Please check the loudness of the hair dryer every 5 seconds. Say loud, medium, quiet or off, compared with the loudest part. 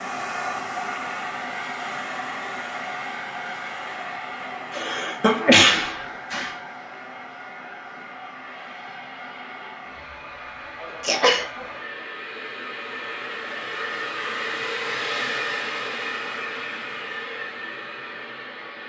loud, medium, loud, loud.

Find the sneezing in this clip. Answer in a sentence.
The sneezing can be heard from 4.7 to 6.5 s and from 11.0 to 11.7 s.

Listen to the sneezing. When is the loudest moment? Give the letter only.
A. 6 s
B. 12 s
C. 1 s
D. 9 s
A.